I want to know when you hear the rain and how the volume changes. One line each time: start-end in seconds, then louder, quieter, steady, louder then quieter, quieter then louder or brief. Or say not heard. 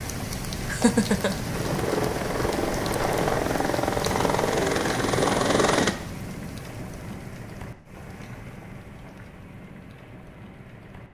0.0-11.0 quieter.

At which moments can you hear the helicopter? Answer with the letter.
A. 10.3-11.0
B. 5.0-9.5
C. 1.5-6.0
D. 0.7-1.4
C.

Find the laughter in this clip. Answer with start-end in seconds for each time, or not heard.
0.7-1.4.